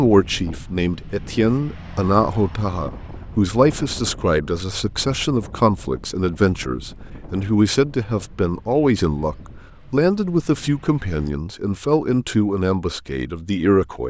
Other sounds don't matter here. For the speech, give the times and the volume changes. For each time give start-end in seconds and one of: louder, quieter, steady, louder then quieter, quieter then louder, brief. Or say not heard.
0.0-14.0 steady.